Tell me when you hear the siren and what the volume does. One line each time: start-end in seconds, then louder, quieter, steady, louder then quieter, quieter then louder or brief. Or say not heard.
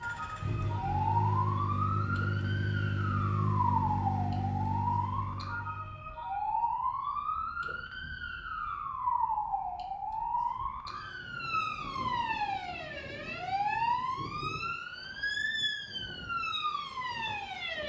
0.0-17.8 steady.